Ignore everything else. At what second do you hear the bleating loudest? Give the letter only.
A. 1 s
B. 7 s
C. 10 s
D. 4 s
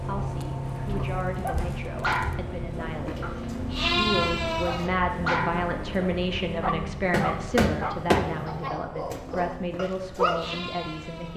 D.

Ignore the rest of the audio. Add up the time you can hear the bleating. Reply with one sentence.
You can hear the bleating for 5 seconds altogether.